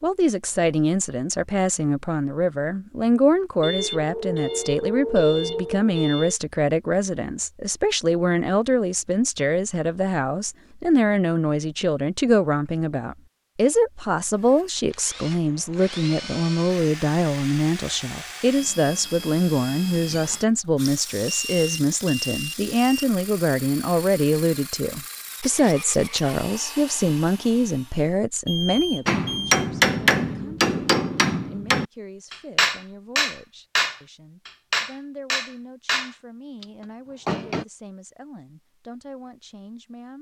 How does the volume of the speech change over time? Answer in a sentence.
The loudness of the speech goes down.